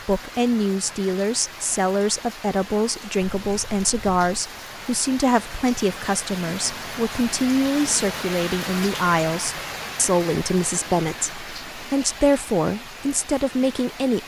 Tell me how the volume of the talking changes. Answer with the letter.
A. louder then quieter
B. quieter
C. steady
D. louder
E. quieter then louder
C.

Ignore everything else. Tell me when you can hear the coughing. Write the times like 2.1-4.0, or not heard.
not heard.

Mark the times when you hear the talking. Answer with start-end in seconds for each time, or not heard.
0.1-14.2.